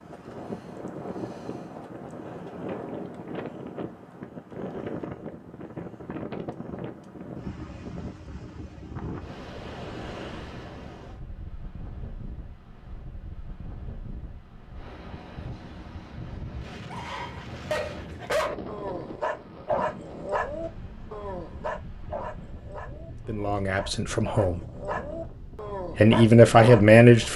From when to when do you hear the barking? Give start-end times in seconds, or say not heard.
16.9-27.3.